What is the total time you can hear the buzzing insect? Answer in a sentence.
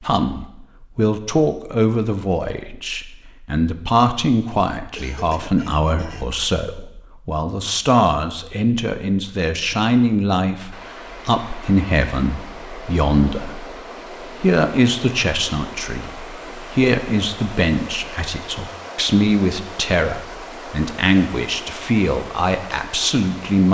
The buzzing insect can't be heard in this clip.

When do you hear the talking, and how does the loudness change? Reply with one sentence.
You can hear the talking from 0.0 to 23.6 s, at a steady volume.